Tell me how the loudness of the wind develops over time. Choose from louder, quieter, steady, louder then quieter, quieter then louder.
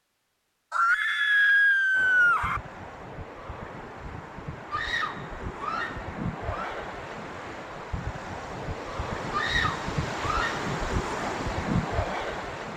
louder.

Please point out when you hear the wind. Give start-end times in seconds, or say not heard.
1.9-12.7.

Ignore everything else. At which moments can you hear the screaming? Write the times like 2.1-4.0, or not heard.
0.7-2.6, 4.7-6.8, 9.3-10.6.